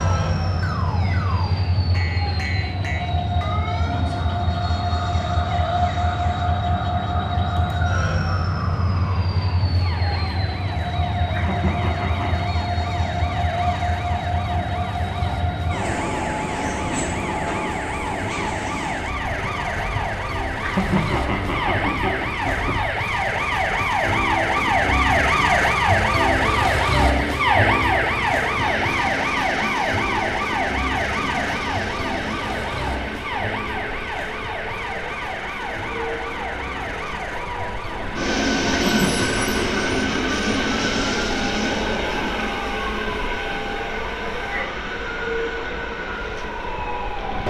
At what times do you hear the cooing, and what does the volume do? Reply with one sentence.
You can't hear the cooing here.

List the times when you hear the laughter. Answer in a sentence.
You can hear the laughter from 11.3 to 12.4 s, from 20.6 to 23.0 s and from 38.9 to 40.0 s.